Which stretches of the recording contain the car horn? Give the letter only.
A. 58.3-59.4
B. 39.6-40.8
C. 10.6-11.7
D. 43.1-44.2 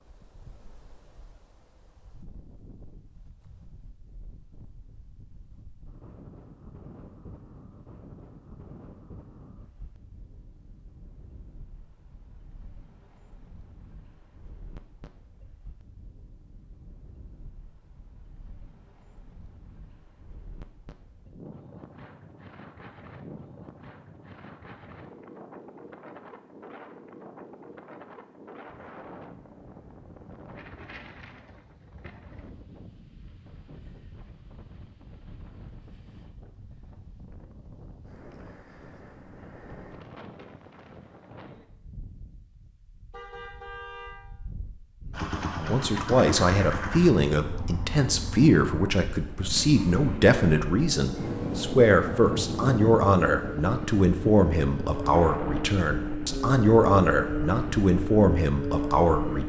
D.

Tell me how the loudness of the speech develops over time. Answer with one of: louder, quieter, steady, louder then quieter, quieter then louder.
steady.